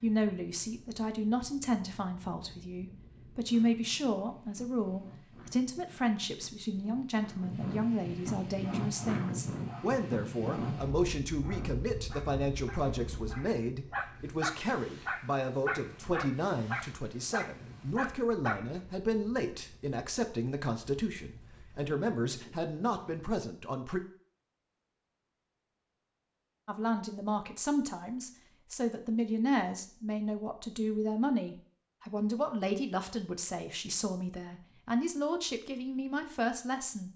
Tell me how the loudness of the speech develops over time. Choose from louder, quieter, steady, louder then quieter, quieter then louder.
steady.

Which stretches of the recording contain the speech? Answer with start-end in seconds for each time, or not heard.
0.0-24.0, 26.6-37.1.